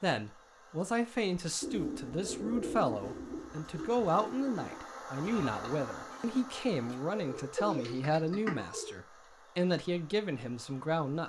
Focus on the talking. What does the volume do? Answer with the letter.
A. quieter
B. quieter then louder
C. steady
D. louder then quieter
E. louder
C.